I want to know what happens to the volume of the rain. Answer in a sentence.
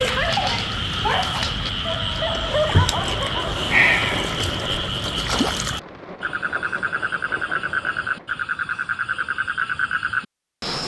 The loudness of the rain goes up, then down.